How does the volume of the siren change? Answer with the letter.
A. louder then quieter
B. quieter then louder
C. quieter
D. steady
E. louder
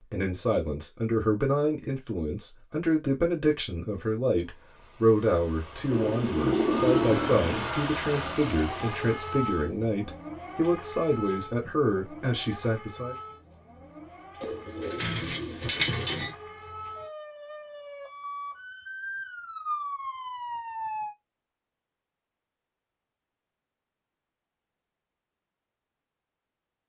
B.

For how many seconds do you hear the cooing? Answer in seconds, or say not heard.
4 s.